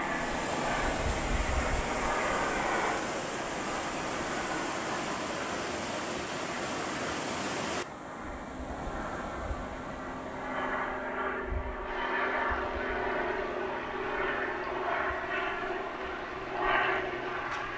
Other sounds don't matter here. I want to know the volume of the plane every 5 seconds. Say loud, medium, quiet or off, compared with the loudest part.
loud, medium, loud, loud.